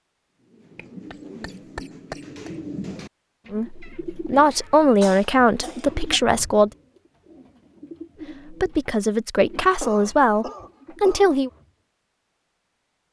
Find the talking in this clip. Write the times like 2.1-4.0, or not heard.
3.5-6.7, 8.4-11.5.